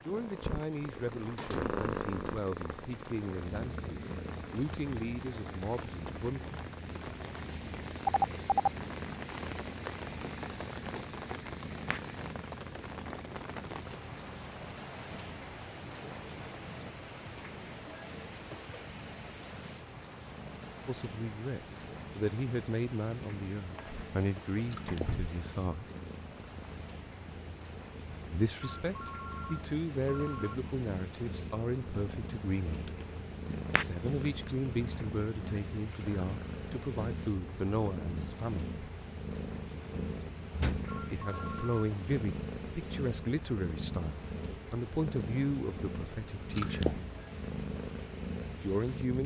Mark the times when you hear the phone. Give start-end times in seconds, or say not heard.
8.1-8.7, 28.6-30.6, 40.9-41.9.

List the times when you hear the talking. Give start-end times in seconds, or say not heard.
0.1-6.5, 20.9-25.9, 28.3-32.9, 33.7-38.7, 41.0-47.0, 48.6-49.2.